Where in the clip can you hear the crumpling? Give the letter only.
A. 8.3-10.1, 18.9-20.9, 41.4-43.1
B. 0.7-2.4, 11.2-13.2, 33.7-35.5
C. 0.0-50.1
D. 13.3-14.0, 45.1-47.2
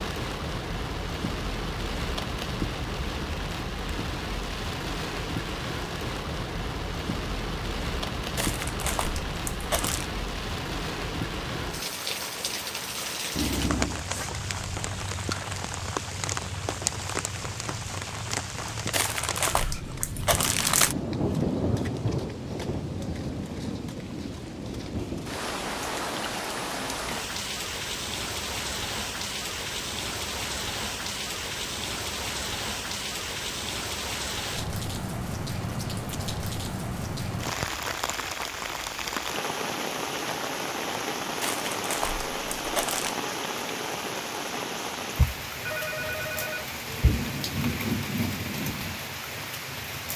A.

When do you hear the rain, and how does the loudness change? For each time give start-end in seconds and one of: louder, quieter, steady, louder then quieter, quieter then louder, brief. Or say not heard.
0.0-50.1 steady.